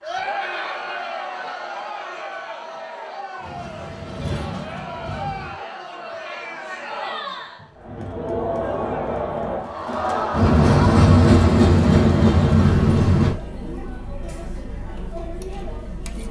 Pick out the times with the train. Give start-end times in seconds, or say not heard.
3.4-5.5, 10.3-13.3.